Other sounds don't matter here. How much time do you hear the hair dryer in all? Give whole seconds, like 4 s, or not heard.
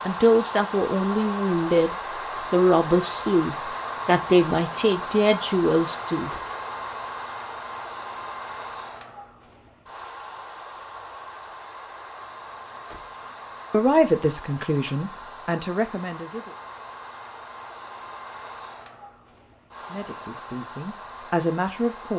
22 s.